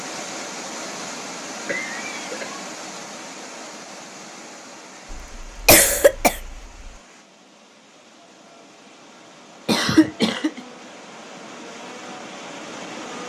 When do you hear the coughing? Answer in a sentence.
The coughing can be heard from 1.6 to 2.5 s, from 5.1 to 6.9 s and from 9.7 to 10.6 s.